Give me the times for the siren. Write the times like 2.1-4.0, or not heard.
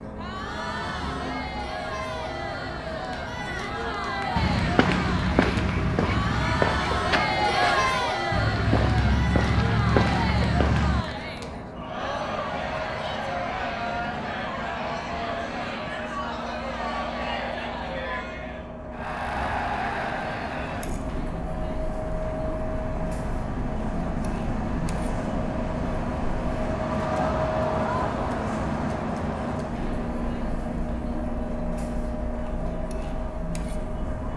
not heard.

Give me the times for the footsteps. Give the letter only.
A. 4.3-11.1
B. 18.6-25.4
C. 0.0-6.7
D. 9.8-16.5
A.